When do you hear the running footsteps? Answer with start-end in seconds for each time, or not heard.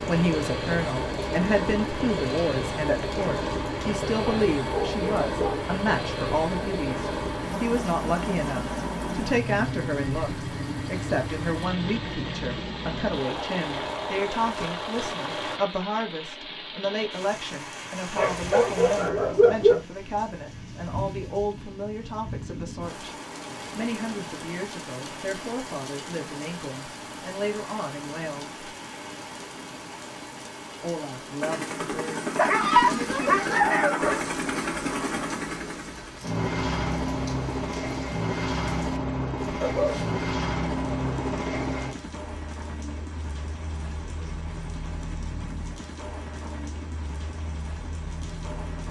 not heard.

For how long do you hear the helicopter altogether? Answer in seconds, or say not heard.
33 s.